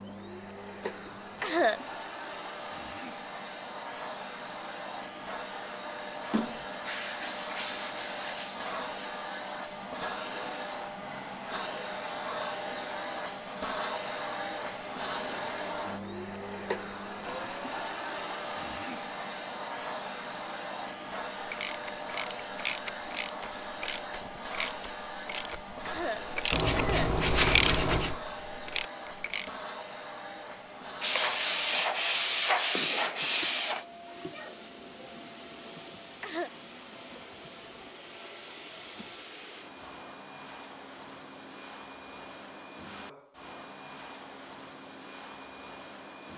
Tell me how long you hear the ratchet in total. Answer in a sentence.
You can hear the ratchet for 8 seconds altogether.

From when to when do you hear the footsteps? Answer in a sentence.
The footsteps can't be heard in this clip.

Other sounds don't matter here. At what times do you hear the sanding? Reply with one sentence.
You can hear the sanding from 6.3 to 8.6 s, from 26.5 to 28.1 s and from 31.0 to 33.9 s.